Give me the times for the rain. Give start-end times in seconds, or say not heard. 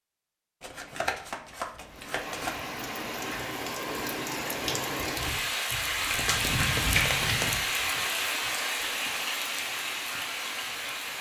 1.8-11.1.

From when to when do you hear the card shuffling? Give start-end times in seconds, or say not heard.
0.6-2.5, 6.0-7.5.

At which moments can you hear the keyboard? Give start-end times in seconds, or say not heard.
not heard.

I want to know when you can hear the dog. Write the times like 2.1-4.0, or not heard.
not heard.